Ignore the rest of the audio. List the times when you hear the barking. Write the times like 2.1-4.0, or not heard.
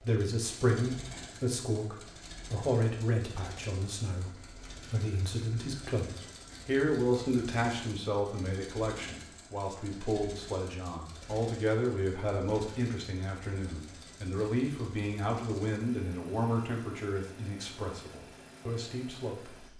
not heard.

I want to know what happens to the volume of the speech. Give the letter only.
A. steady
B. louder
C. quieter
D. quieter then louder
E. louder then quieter
A.